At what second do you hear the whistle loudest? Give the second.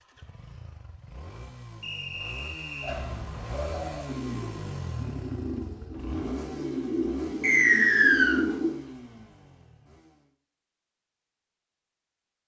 8 s.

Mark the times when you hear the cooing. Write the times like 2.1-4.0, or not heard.
2.8-8.8.